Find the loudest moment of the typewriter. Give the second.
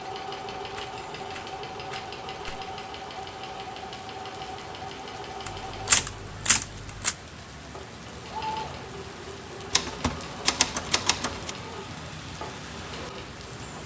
6 s.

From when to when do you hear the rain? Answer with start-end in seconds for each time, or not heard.
0.0-13.8.